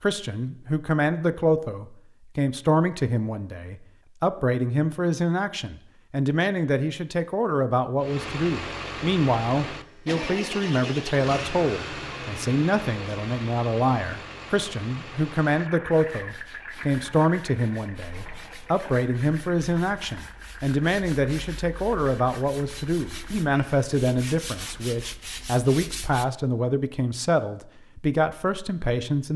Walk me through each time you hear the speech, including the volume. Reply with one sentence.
You can hear the speech from 0.0 to 29.3 s, at a steady volume.